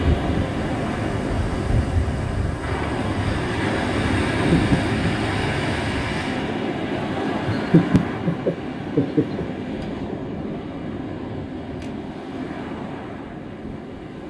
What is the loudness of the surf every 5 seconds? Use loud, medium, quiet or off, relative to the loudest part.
loud, loud, medium.